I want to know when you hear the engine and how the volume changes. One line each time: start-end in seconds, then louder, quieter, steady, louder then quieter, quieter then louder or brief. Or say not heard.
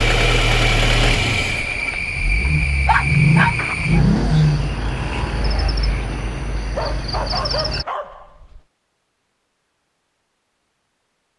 0.0-4.8 quieter then louder.